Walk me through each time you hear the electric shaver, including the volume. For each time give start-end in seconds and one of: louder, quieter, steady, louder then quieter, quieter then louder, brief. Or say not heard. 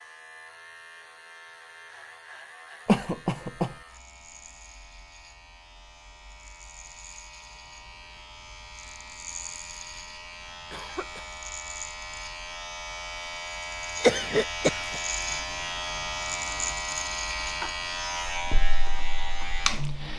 0.0-20.1 louder.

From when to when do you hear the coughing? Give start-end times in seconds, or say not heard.
2.9-3.8, 10.7-11.2, 14.0-15.0.